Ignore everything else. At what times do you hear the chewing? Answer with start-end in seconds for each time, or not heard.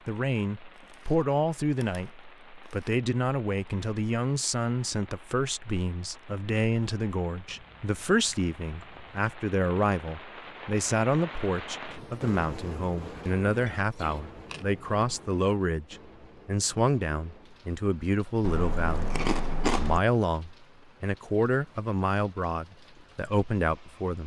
0.8-2.9, 7.5-9.1, 13.7-15.1, 18.4-20.0.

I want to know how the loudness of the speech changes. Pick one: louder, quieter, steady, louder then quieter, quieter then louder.
steady.